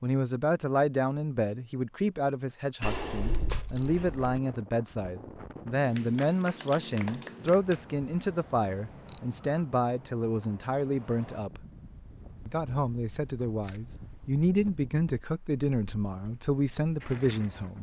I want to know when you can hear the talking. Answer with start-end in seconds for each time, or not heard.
0.0-11.6, 12.4-17.7.